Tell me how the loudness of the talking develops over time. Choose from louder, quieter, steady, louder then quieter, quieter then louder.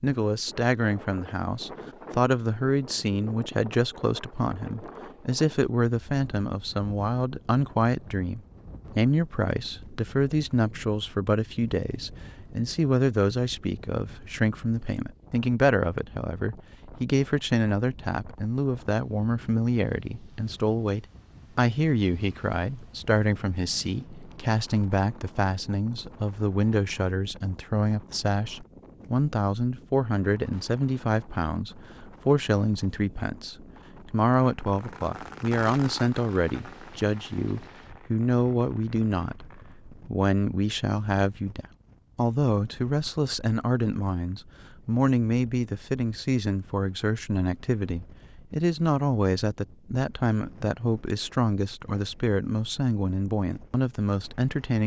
steady.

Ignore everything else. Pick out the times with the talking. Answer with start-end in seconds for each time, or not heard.
0.0-54.8.